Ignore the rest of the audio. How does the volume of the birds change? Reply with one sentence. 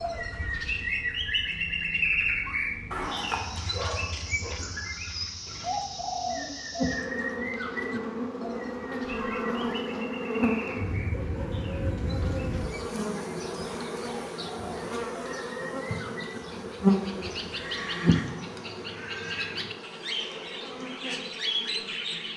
The loudness of the birds goes down, then up.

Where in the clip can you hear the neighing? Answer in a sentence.
You can hear the neighing from 2.9 to 3.6 s, from 9.0 to 9.7 s and from 17.5 to 18.4 s.